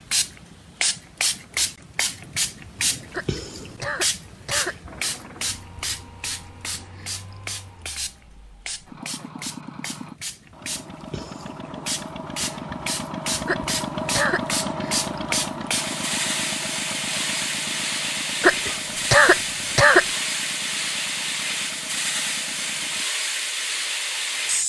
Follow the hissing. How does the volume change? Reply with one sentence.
The volume of the hissing goes down, then up.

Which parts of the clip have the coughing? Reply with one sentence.
You can hear the coughing from 3.1 to 4.8 s, from 13.4 to 14.4 s and from 18.4 to 20.1 s.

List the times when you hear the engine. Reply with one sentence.
You can hear the engine from 4.8 to 23.1 s.